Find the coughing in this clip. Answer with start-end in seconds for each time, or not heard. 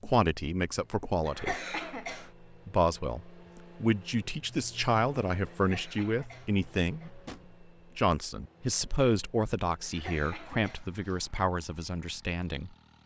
1.2-2.3, 5.5-7.1, 9.8-11.4.